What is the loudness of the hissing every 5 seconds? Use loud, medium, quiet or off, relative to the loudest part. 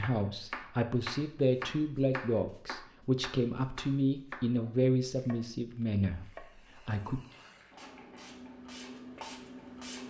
off, loud.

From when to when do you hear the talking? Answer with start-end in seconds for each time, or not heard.
0.0-7.2.